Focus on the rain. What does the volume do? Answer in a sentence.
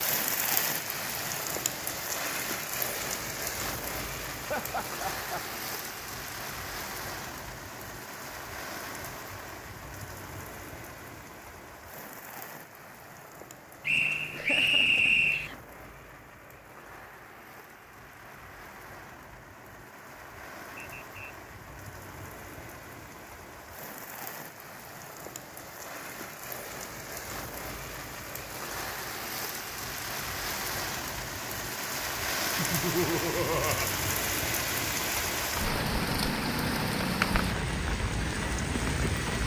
The loudness of the rain goes down, then up.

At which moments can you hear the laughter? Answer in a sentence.
You can hear the laughter from 4.5 to 5.4 s, from 14.3 to 15.6 s and from 32.5 to 34.0 s.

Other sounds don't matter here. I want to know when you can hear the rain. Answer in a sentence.
You can hear the rain from 0.0 to 39.4 s.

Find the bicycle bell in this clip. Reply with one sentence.
You can't hear the bicycle bell here.